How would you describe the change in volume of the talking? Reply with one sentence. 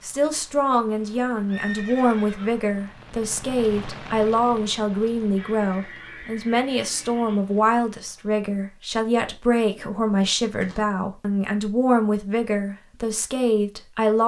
The volume of the talking stays about the same.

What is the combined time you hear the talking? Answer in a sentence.
The talking can be heard for 14 seconds in total.